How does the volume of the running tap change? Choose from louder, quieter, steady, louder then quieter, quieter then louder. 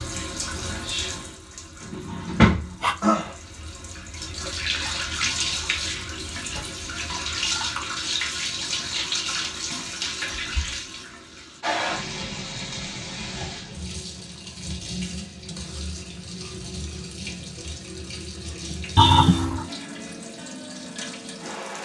quieter.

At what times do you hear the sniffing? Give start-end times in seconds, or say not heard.
2.0-3.0, 18.9-19.6.